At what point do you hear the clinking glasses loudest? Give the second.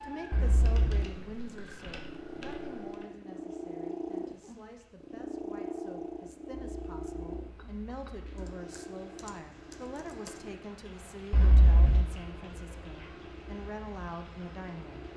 12 s.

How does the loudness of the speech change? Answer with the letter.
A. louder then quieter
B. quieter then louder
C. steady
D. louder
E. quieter
B.